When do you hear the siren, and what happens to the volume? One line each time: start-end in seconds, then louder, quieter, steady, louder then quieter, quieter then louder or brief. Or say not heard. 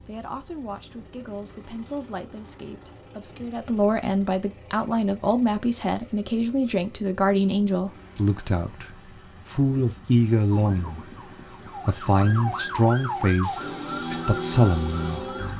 10.5-15.5 louder.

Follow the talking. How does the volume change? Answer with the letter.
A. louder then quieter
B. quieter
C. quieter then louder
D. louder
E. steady
D.